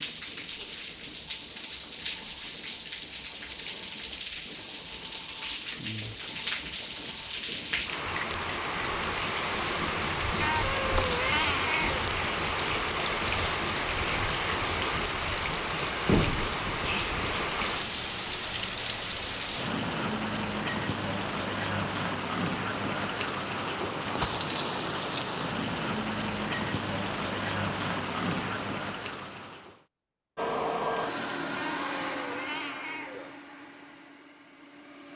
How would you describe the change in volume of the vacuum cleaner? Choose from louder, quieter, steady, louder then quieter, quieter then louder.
quieter.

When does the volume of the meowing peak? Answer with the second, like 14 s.
11 s.